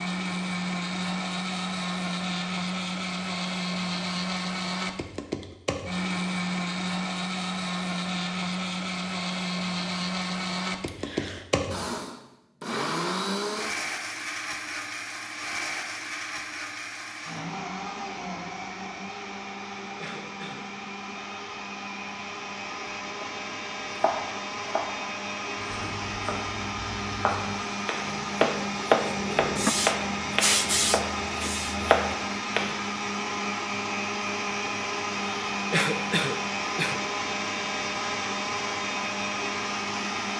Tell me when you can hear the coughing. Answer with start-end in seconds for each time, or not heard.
10.8-11.4, 19.9-20.6, 35.7-37.0.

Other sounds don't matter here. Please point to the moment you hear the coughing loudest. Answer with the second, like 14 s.
36 s.